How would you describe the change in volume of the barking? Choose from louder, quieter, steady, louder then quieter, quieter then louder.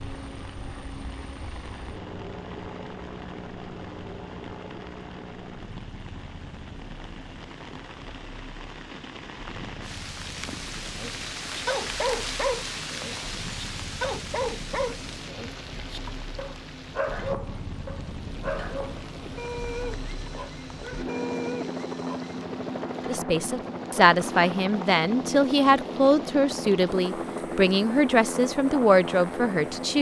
quieter.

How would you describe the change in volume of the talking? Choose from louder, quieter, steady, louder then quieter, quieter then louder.
steady.